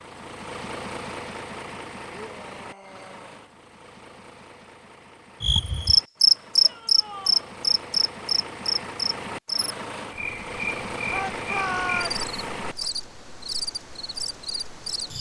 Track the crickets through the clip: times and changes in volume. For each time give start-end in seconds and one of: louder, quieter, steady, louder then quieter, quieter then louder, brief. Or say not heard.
5.4-15.1 quieter.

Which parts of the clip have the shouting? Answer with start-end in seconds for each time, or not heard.
2.1-3.4, 6.6-7.5, 11.1-12.2.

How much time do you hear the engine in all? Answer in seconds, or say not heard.
13 s.